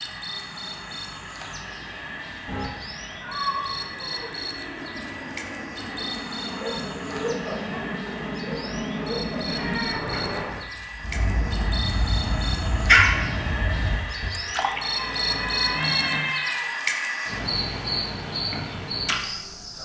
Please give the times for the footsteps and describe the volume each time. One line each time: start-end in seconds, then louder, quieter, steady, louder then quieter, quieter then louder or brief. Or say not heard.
not heard.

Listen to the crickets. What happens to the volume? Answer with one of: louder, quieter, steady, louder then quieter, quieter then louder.
louder.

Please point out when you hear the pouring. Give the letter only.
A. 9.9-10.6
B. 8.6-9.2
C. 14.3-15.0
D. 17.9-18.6
C.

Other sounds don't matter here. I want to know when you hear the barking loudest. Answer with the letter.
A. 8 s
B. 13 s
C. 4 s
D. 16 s
B.